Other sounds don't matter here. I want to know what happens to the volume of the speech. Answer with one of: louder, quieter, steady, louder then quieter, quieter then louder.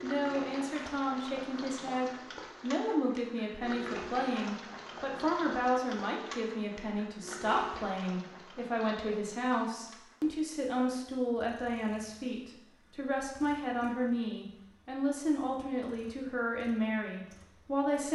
steady.